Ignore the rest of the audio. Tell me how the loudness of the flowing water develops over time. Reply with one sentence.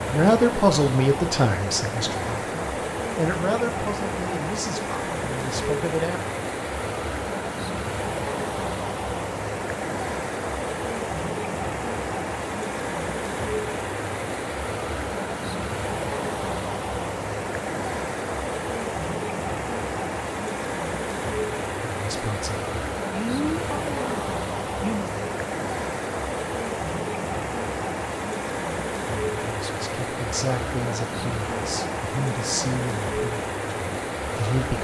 The loudness of the flowing water stays about the same.